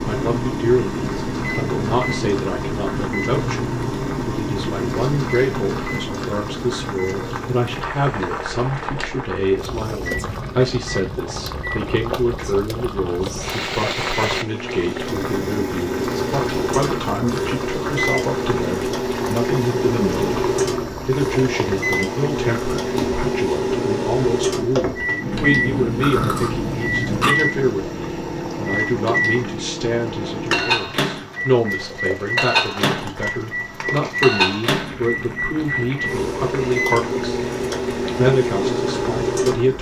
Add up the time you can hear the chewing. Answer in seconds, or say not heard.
2 s.